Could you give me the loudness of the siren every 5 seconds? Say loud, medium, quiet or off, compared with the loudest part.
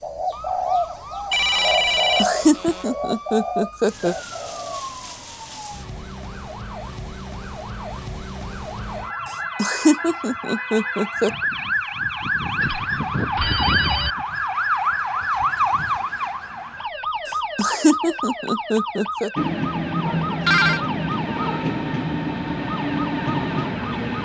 quiet, medium, loud, loud, medium.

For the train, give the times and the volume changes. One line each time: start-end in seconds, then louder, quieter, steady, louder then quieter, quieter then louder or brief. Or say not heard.
19.4-24.1 steady.